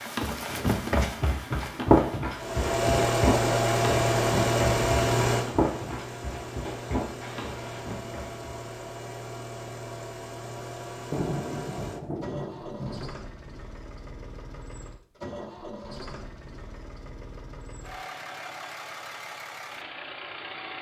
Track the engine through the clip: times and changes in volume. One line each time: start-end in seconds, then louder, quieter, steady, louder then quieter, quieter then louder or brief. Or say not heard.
2.4-20.7 quieter.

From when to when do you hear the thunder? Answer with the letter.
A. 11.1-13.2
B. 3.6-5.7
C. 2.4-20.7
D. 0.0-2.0
A.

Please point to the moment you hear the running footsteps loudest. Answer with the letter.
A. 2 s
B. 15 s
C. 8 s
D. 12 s
A.